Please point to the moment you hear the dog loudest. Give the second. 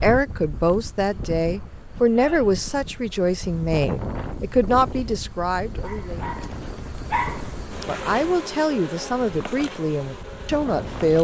7 s.